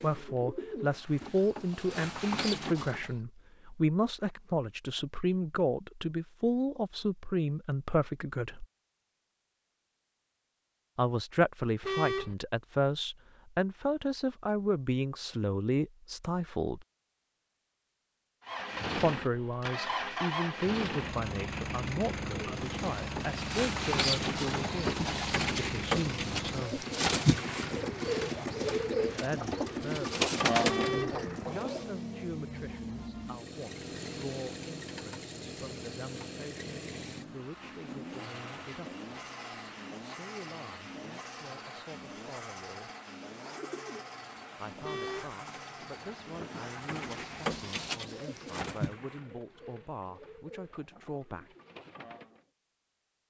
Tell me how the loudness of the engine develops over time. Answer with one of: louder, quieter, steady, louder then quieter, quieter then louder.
quieter.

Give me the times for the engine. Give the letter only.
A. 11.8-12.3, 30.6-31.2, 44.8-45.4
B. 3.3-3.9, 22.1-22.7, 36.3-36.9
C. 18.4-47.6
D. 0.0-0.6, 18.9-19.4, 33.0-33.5
C.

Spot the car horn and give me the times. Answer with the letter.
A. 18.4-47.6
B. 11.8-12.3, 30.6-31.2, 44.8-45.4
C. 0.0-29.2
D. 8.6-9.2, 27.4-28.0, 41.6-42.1
B.